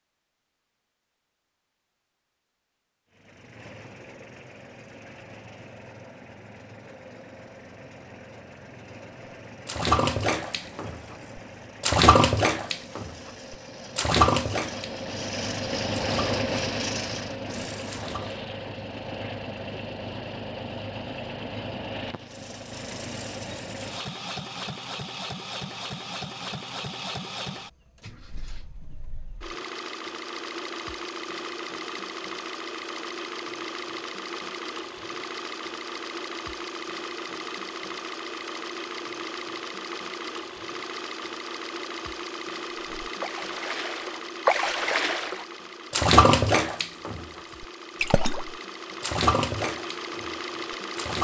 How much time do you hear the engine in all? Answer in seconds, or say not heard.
48 s.